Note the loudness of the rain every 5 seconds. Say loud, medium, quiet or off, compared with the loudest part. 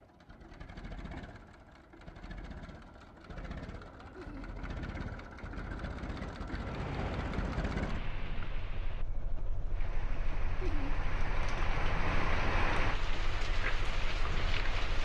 off, medium, loud.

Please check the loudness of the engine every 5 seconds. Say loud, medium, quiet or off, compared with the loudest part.
medium, loud, medium.